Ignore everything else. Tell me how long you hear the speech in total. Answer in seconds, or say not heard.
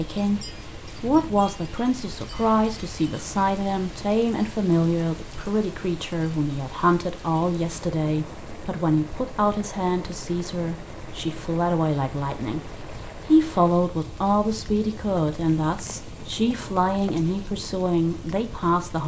19 s.